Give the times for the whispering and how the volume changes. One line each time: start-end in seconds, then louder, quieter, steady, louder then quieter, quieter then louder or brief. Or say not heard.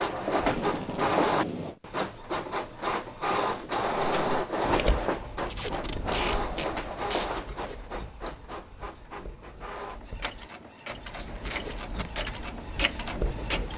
not heard.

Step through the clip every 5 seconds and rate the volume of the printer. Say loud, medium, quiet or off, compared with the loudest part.
loud, medium, medium.